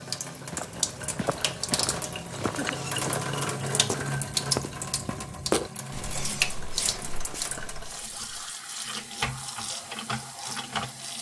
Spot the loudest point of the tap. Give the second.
4 s.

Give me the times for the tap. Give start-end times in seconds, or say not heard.
0.0-11.1.